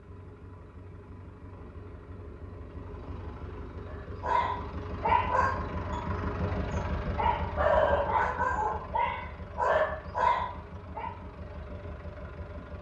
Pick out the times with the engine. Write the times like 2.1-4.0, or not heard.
0.0-12.7.